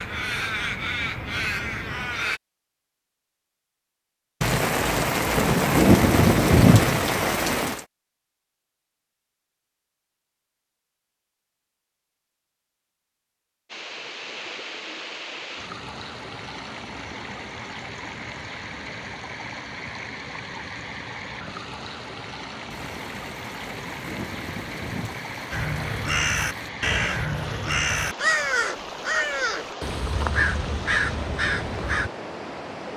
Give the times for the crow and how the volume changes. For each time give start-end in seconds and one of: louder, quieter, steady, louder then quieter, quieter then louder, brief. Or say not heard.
0.0-2.4 brief
25.5-32.1 steady.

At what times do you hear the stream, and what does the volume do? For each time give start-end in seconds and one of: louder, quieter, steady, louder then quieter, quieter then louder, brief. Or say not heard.
13.7-32.9 steady.